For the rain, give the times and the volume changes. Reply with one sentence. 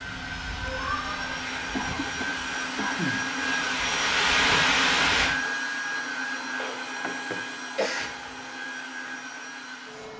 You can hear the rain from 0.0 to 5.3 s, getting louder.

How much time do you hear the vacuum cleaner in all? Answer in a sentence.
The vacuum cleaner can be heard for 10 seconds in total.